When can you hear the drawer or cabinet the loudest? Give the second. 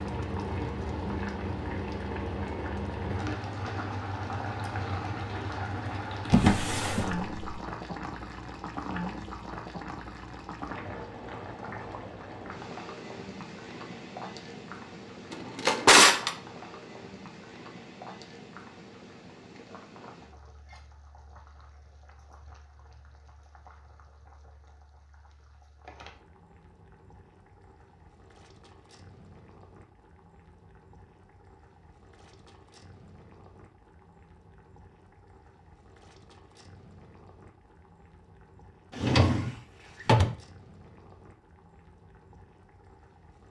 16 s.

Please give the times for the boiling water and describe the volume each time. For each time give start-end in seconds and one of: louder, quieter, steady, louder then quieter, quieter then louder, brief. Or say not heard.
0.0-43.4 quieter.